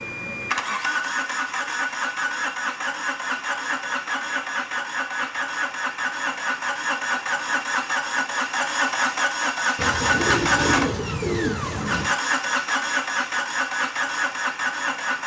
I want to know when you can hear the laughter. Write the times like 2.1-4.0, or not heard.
not heard.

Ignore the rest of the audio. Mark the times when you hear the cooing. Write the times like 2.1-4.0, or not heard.
9.8-12.2.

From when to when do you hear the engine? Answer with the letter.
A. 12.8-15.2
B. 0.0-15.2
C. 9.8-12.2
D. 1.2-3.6
B.